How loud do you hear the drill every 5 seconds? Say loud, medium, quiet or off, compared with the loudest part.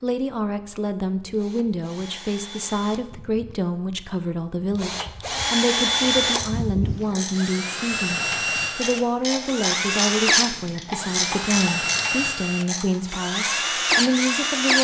quiet, loud, loud.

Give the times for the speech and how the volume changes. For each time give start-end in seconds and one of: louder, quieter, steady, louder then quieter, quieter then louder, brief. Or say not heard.
0.0-14.7 steady.